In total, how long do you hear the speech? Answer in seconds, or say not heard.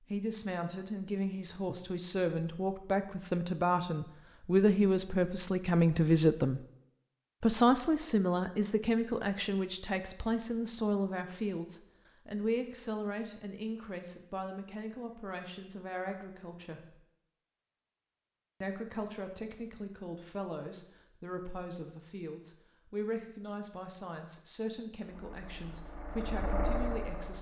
25 s.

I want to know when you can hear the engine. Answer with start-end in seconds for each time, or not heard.
25.0-27.3.